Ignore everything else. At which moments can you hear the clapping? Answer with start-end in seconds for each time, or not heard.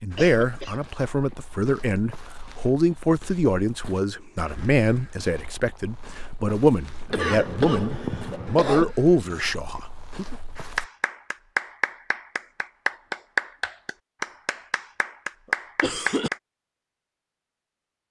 10.6-16.4.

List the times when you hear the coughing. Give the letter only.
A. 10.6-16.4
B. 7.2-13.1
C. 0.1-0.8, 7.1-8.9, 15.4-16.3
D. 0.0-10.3
C.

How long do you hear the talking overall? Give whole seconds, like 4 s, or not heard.
10 s.